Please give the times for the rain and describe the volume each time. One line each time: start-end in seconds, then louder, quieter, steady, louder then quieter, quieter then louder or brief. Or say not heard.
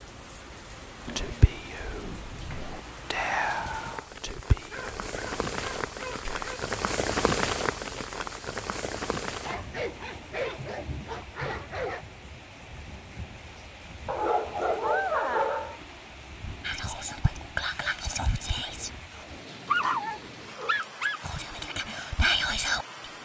0.0-23.1 louder then quieter.